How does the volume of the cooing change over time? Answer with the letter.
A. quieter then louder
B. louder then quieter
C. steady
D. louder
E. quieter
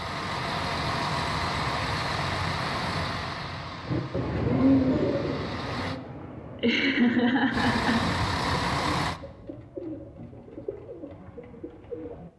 E.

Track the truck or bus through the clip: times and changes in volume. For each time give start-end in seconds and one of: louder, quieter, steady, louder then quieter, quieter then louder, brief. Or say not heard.
0.0-6.0 quieter
7.5-9.2 brief.